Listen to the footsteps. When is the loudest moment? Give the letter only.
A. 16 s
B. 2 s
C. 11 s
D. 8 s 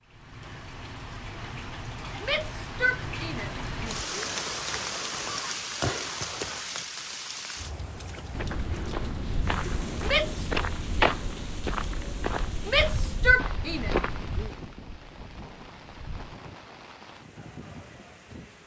C.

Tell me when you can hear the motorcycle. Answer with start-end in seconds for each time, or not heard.
not heard.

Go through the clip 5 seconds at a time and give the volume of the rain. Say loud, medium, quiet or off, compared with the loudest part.
loud, loud, medium, medium.